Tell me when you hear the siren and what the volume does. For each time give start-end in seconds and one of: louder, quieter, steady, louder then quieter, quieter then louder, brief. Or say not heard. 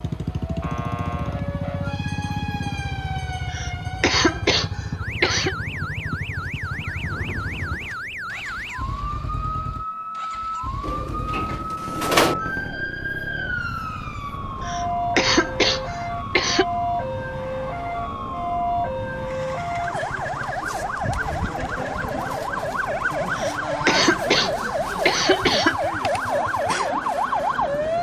0.0-27.9 louder.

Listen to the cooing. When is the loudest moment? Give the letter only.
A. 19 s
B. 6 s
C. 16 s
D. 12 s
D.